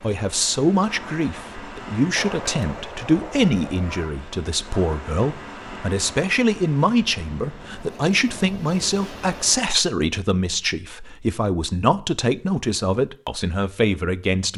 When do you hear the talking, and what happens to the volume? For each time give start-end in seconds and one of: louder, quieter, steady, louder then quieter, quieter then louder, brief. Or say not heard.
0.0-14.5 steady.